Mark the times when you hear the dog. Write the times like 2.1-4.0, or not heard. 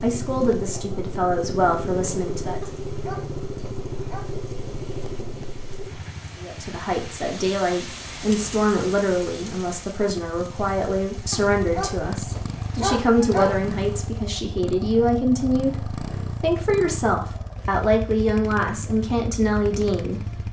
2.6-4.2, 11.3-13.6.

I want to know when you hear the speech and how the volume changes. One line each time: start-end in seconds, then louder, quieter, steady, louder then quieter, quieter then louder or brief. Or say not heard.
0.0-2.7 brief
6.4-20.2 steady.